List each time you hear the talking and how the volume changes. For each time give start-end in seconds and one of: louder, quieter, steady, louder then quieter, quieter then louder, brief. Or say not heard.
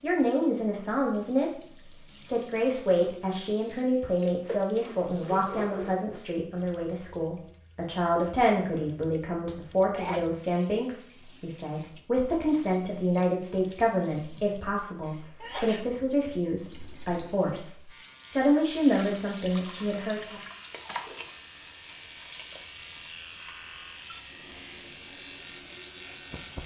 0.0-20.4 steady.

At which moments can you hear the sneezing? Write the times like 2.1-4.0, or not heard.
8.8-10.4, 15.0-15.9.